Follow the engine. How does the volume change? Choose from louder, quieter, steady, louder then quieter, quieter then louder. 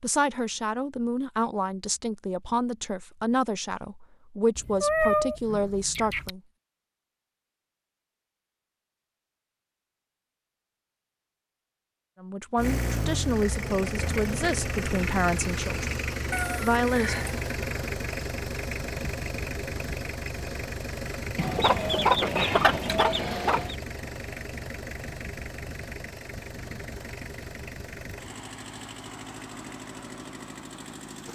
quieter.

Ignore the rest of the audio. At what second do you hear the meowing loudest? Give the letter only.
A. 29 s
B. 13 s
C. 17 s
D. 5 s
D.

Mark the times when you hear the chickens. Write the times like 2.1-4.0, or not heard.
21.4-23.8.